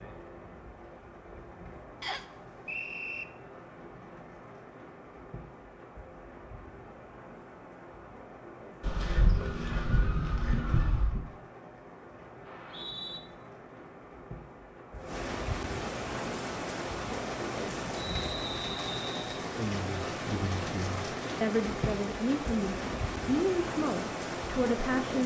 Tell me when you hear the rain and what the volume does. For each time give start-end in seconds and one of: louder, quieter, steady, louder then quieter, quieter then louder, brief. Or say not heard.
0.0-25.2 louder.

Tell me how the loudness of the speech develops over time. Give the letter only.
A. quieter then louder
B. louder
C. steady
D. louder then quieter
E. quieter
B.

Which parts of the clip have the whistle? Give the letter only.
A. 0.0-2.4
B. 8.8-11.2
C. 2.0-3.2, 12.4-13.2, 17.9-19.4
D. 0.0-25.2
C.